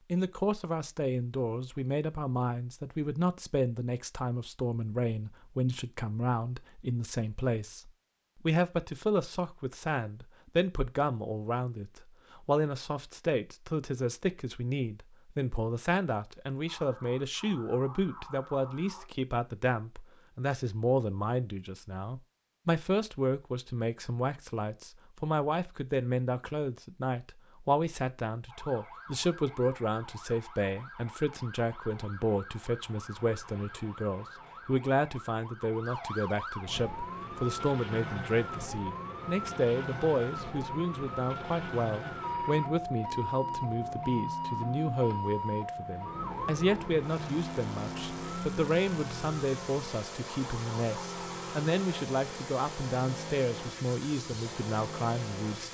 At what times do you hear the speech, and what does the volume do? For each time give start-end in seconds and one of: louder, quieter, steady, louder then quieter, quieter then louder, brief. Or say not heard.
0.1-55.6 steady.